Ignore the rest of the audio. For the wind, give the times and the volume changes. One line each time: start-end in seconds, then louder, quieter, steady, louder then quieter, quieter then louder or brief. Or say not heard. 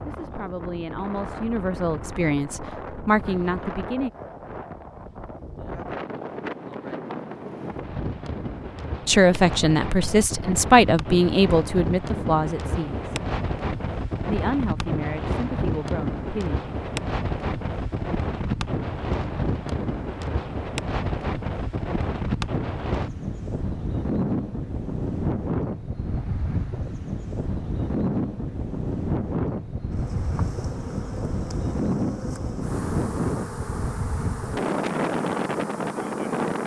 0.0-36.6 louder.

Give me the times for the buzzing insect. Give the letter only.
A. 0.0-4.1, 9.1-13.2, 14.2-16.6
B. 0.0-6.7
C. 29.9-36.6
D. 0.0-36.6
C.